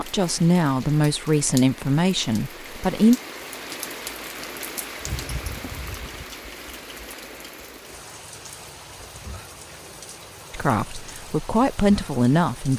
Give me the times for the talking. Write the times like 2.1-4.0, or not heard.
0.0-3.2, 10.5-12.7.